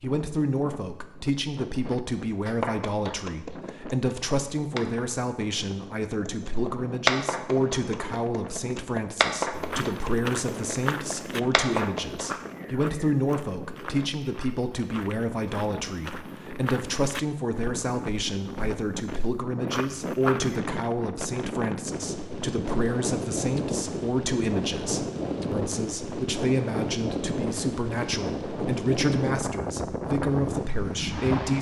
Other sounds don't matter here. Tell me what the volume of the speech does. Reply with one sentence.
The loudness of the speech stays about the same.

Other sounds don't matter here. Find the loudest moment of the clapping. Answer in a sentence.
The loudest moment of the clapping is at 7 seconds.